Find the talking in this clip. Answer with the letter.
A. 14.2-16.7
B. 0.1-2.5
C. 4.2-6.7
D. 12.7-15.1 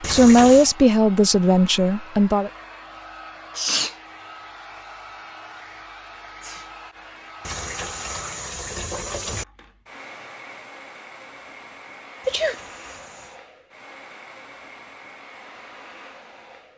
B.